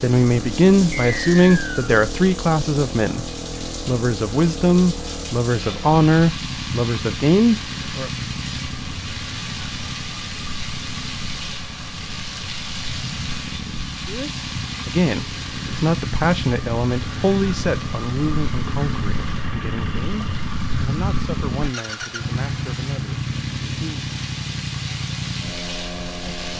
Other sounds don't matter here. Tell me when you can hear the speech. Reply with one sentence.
The speech can be heard from 0.0 to 8.1 s and from 14.1 to 24.1 s.